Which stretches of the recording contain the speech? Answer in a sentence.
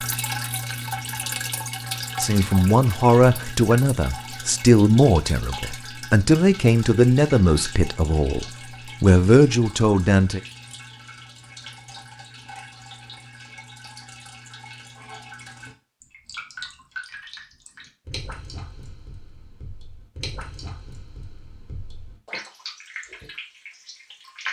The speech can be heard from 2.2 to 10.4 s.